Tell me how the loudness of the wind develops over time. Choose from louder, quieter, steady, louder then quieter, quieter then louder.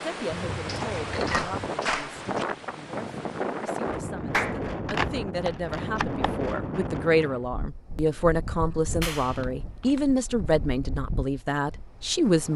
quieter.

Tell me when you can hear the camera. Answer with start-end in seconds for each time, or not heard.
0.3-1.8, 4.8-6.3, 9.2-10.1.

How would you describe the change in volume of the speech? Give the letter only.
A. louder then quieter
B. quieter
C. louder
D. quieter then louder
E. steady
C.